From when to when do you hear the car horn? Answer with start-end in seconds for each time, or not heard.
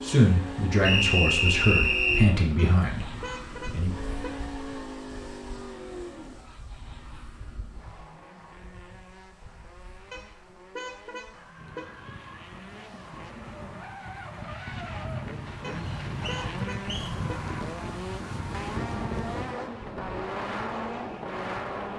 2.5-4.5, 10.1-12.0, 15.6-17.6.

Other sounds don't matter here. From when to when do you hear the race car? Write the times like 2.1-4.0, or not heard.
0.0-21.9.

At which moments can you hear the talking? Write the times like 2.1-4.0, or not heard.
0.0-3.9.